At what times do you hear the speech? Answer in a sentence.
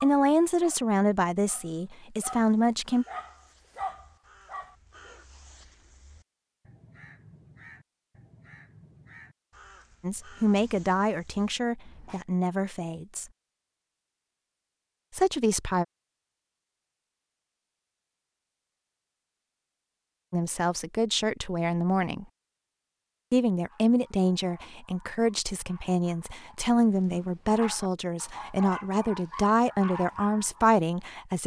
The speech can be heard from 0.0 to 3.0 s, from 10.0 to 13.2 s, from 15.1 to 15.8 s, from 20.3 to 22.2 s and from 23.3 to 31.4 s.